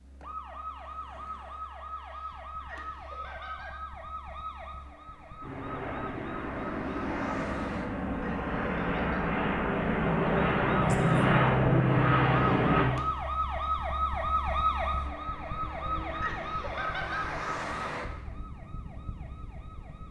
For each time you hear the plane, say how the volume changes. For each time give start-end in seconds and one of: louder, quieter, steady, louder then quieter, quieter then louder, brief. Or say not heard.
5.4-12.9 louder.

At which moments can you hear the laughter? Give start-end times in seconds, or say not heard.
2.6-3.8, 8.1-9.2, 16.1-17.2.